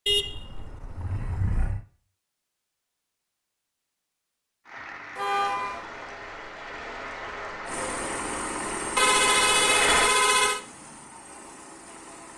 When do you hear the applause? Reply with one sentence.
You can hear the applause from 4.7 to 10.1 s.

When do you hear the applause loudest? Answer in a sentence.
The loudest moment of the applause is at 10 seconds.